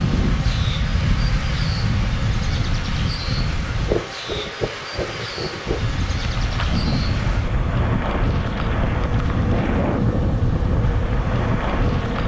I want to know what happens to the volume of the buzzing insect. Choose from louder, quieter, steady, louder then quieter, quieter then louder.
steady.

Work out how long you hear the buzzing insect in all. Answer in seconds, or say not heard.
12 s.